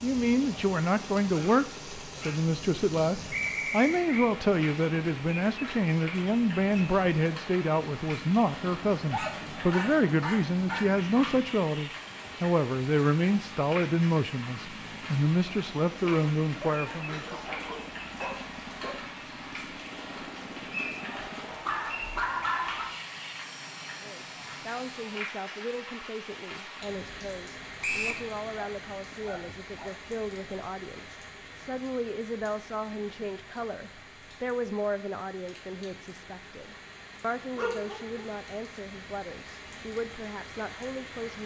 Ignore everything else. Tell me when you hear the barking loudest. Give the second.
22 s.